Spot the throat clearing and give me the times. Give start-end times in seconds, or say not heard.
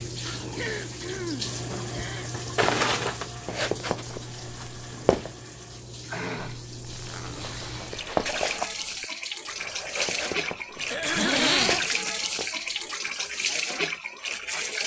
0.2-2.3, 6.1-6.6, 10.8-12.2.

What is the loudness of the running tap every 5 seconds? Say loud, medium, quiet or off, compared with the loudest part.
medium, medium, loud.